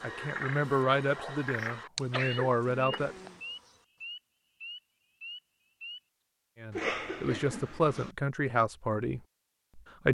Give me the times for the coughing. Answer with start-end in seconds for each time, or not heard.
2.1-3.4, 6.7-8.2.